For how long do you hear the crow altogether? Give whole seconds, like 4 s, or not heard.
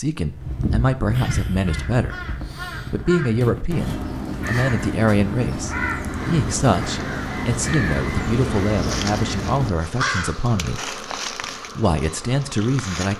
10 s.